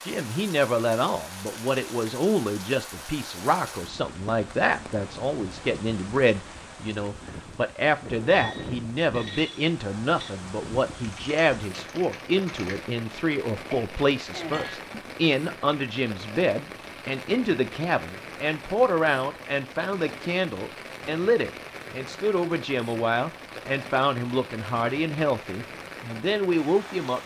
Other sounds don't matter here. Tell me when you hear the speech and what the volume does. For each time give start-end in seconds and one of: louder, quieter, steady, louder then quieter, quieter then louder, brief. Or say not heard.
0.0-27.2 steady.